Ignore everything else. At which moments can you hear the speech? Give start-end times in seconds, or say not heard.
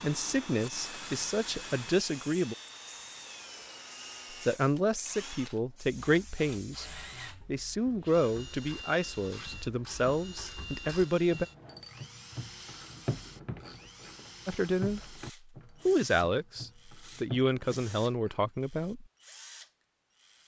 0.0-2.5, 4.3-11.4, 14.4-15.2, 15.8-19.1.